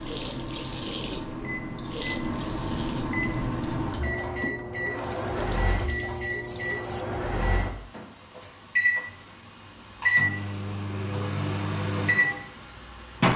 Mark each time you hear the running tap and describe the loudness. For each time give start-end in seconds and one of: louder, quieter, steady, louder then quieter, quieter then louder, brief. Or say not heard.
0.0-7.0 quieter.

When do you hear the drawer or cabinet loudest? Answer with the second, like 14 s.
5 s.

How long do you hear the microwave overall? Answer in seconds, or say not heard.
13 s.